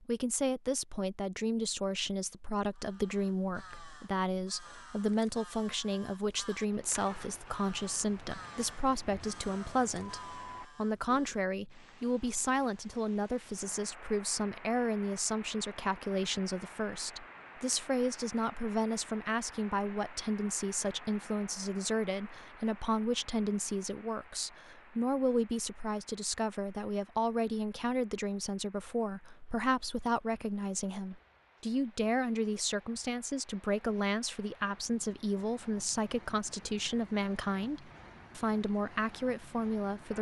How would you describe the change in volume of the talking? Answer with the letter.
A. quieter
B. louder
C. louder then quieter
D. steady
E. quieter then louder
D.